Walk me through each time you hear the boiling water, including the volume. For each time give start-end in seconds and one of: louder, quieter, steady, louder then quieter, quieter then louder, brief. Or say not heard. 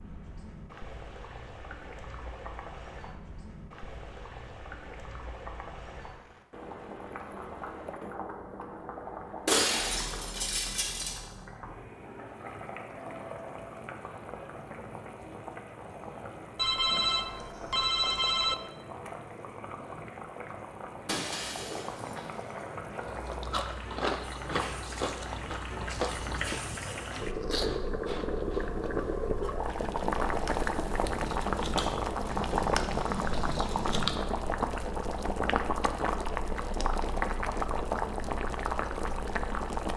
0.0-39.9 louder.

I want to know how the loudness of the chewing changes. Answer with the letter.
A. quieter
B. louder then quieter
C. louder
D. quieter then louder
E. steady
D.